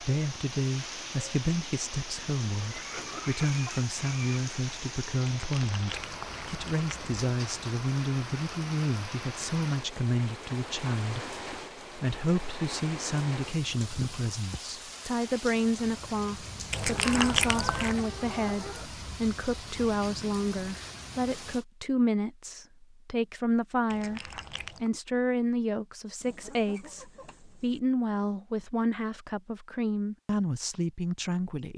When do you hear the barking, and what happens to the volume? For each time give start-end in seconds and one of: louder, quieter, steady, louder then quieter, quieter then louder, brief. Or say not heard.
not heard.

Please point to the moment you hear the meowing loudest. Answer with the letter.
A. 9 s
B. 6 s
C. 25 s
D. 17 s
D.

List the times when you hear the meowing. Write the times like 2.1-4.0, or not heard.
5.2-7.2, 16.7-18.0, 23.9-24.9.